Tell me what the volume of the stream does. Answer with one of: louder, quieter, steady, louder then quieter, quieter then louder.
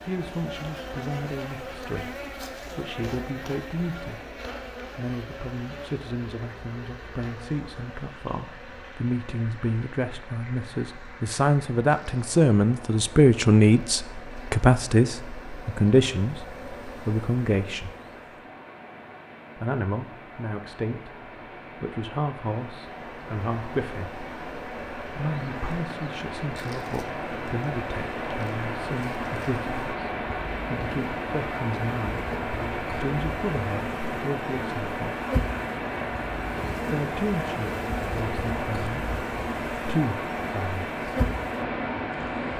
louder.